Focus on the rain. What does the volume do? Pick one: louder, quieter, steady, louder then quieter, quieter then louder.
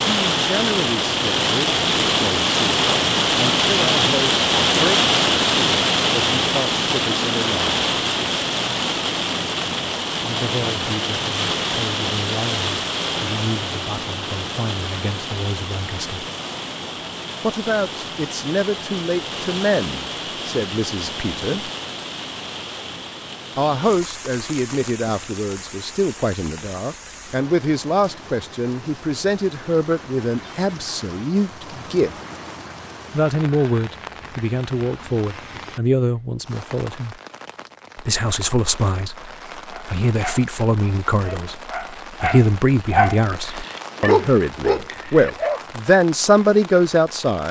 quieter.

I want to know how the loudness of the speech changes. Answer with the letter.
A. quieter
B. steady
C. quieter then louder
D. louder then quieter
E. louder
E.